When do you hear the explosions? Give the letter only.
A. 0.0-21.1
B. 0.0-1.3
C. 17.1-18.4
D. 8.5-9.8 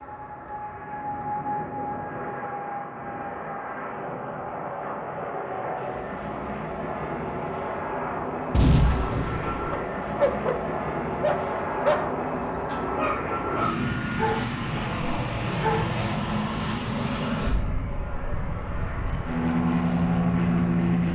D.